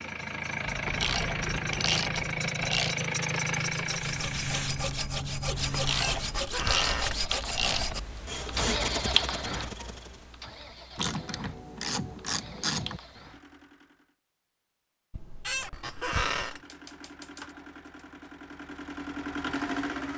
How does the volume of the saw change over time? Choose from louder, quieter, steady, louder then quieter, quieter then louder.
steady.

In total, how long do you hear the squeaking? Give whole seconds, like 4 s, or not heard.
3 s.